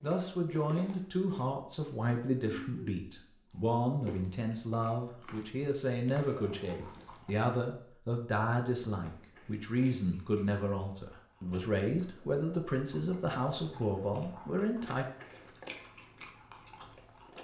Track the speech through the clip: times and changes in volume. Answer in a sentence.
You can hear the speech from 0.0 to 15.1 s, at a steady volume.